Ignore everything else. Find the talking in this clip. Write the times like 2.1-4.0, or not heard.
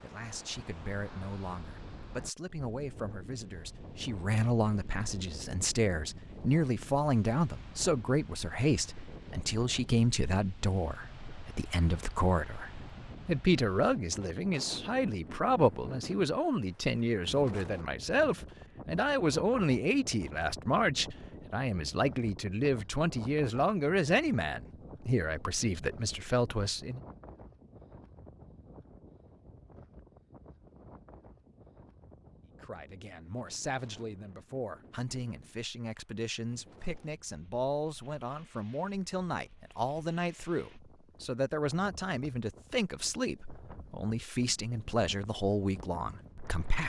0.0-27.0, 32.6-46.8.